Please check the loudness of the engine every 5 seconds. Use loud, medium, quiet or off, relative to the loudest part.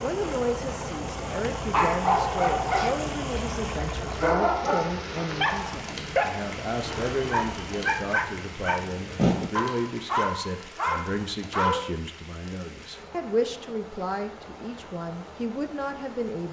loud, medium, off, off.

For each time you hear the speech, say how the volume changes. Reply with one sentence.
The speech can be heard from 0.0 to 16.4 s, at a steady volume.